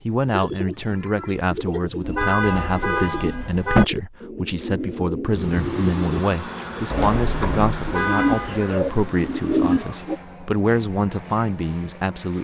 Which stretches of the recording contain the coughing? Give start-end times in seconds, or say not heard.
not heard.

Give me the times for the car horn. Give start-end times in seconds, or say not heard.
2.0-3.9, 7.8-8.7.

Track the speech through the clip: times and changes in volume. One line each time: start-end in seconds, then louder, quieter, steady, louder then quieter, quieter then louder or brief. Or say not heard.
0.1-12.3 steady.